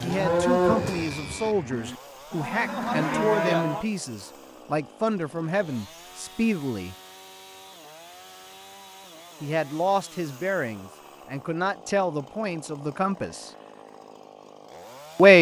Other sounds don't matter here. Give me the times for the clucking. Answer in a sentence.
The clucking can't be heard in this clip.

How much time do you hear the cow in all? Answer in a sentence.
You can hear the cow for 4 seconds altogether.